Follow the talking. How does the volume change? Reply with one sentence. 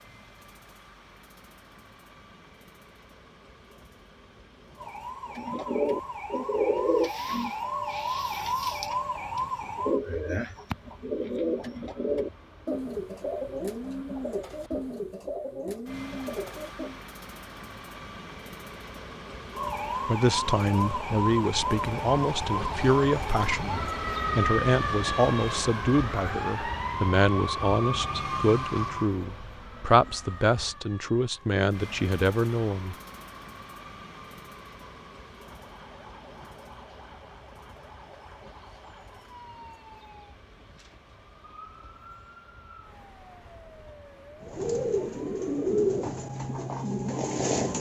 The volume of the talking stays about the same.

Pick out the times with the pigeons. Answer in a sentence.
The pigeons can be heard from 5.3 to 17.0 s and from 44.4 to 47.7 s.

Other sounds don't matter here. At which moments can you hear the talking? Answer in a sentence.
The talking can be heard from 20.1 to 33.0 s.